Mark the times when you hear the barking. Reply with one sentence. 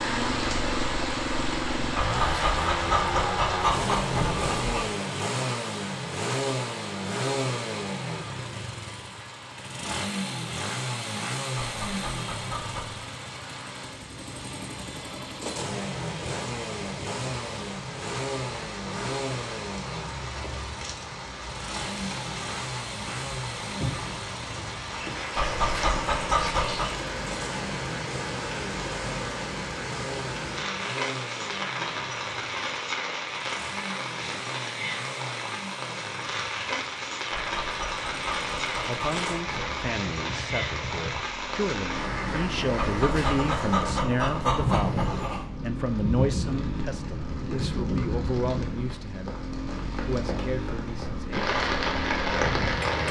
The barking can be heard from 1.9 to 4.9 s, from 11.6 to 13.1 s, from 25.4 to 26.9 s, from 37.3 to 40.0 s and from 42.8 to 45.5 s.